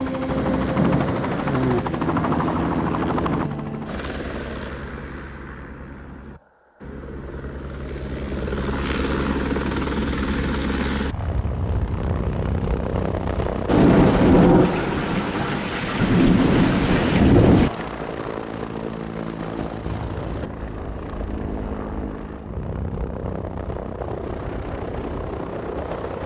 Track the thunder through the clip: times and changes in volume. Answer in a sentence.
You can hear the thunder briefly from 0.2 to 1.8 s; and from 13.7 to 17.7 s, getting quieter then louder.